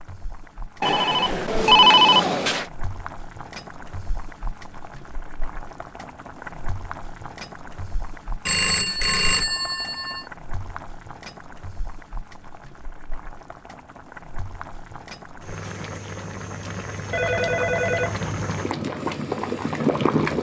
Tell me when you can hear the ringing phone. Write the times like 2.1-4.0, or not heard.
0.8-2.6, 8.4-10.2, 17.1-18.6.